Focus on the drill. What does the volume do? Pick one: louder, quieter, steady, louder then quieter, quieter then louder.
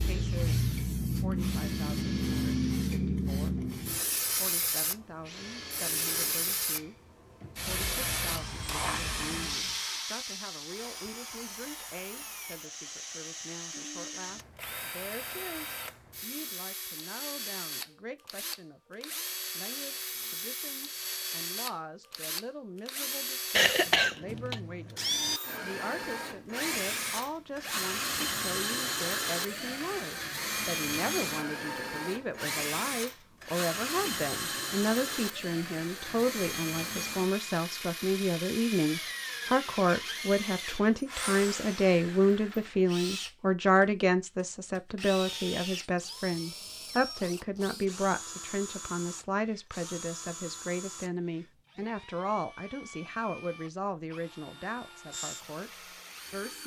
louder then quieter.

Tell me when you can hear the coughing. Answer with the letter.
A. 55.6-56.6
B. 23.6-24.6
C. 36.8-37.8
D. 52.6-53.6
B.